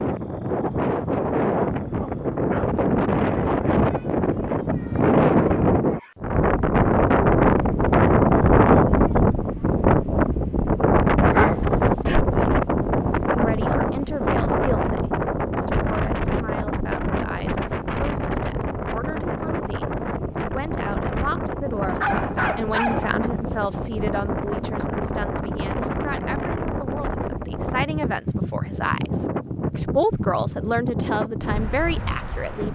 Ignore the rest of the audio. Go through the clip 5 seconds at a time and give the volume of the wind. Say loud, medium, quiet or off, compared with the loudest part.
medium, loud, loud, medium, medium, medium, medium.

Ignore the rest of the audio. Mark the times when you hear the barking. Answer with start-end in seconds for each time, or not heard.
1.9-2.7, 11.2-12.6, 22.0-23.1.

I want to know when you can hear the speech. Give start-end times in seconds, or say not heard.
13.3-32.6.